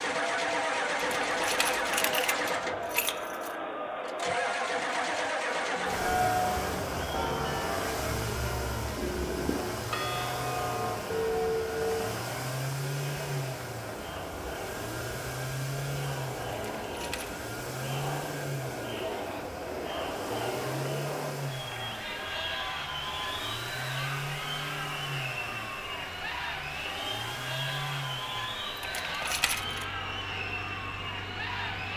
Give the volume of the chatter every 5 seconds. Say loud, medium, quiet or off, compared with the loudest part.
loud, loud, medium, loud, loud, loud, loud.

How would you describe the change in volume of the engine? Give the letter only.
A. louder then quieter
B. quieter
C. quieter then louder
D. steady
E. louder
B.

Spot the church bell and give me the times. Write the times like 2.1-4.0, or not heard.
5.8-12.2.